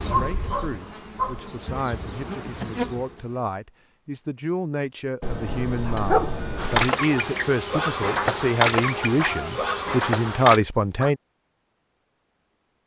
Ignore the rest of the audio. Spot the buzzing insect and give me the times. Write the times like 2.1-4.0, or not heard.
0.0-3.5, 6.5-10.6.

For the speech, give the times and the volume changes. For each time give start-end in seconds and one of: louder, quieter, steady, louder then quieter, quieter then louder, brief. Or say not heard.
0.0-11.2 louder.